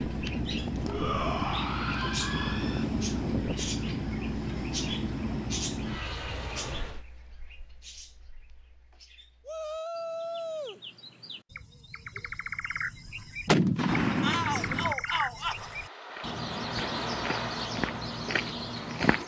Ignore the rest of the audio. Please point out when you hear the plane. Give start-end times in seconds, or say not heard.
0.0-7.0, 15.3-18.9.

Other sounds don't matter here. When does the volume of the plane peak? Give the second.
3 s.